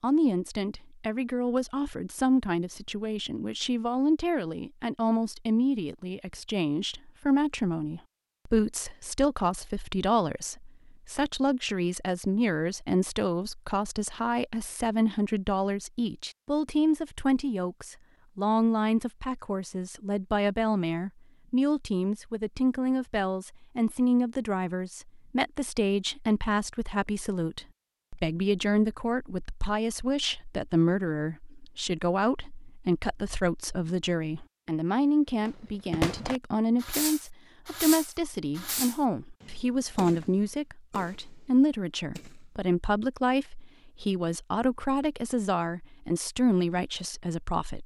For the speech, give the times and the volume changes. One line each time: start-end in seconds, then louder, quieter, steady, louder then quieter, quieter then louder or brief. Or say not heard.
0.0-47.8 steady.